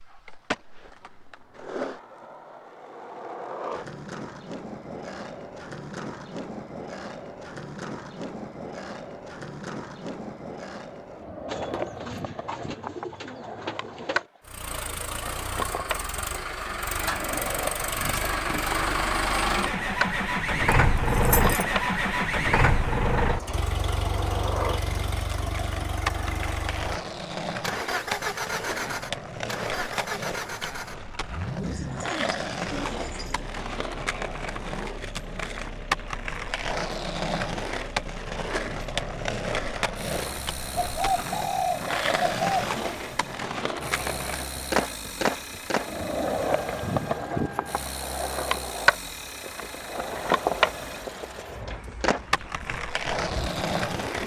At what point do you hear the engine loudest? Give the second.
21 s.